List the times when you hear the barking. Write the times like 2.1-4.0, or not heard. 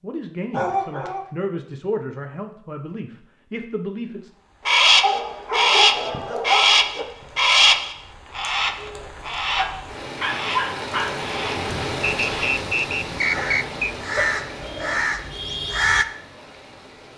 0.5-1.2, 5.0-7.0, 9.6-11.2, 13.3-15.0.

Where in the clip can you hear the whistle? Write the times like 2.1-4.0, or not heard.
12.1-13.9.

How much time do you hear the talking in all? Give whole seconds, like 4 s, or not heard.
4 s.